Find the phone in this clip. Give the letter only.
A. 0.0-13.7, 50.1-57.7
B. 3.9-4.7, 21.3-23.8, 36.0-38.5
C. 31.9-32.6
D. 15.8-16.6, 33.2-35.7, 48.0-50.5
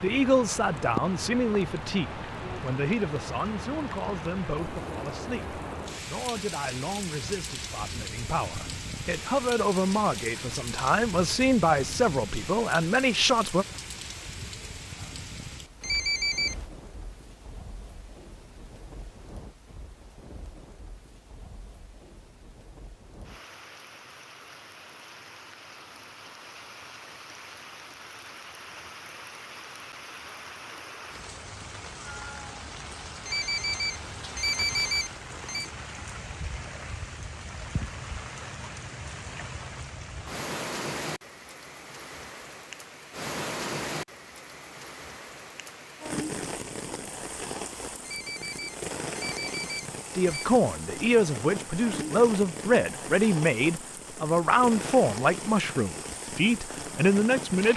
D.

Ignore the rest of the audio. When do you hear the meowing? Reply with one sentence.
You can hear the meowing from 31.9 to 32.6 s.